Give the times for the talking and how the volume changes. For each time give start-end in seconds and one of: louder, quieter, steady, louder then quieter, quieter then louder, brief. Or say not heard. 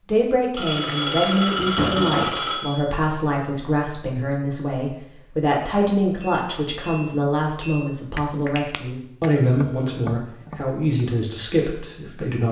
0.1-12.4 steady.